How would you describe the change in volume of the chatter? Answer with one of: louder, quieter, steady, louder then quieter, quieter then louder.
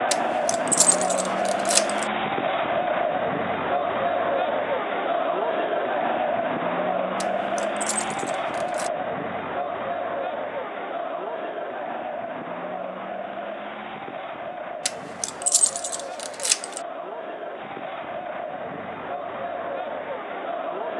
quieter.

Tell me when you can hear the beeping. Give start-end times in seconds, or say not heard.
not heard.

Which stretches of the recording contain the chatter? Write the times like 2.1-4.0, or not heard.
0.0-20.9.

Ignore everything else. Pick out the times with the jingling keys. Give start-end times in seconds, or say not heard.
0.1-2.0, 7.2-8.9, 14.8-16.8.